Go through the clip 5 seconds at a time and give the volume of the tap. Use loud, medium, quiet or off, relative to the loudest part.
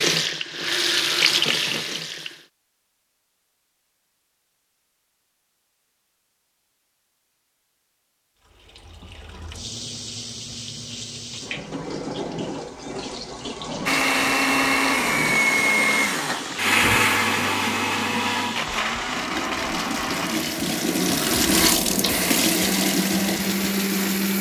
loud, quiet, medium, medium, loud.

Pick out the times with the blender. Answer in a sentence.
The blender can be heard from 13.8 to 24.3 s.